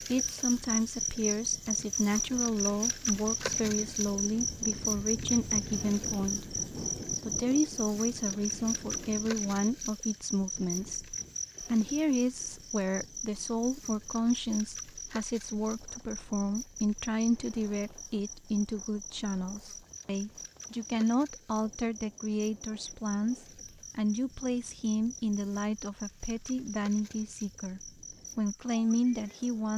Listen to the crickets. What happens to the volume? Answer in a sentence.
The volume of the crickets goes down.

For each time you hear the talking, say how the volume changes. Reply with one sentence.
The talking can be heard from 0.0 to 29.7 s, at a steady volume.